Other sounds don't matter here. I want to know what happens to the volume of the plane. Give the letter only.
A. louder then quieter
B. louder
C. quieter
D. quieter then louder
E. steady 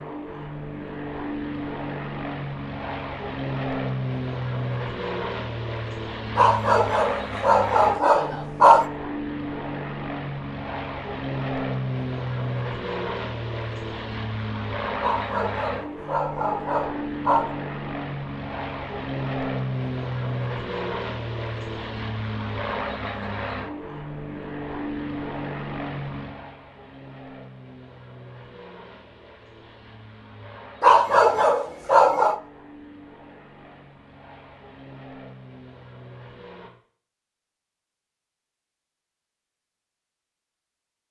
C.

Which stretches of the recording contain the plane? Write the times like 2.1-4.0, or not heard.
0.0-36.7.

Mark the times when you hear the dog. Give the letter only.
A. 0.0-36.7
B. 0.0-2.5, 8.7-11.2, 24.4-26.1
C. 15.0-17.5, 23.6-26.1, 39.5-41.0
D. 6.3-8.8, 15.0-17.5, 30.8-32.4
D.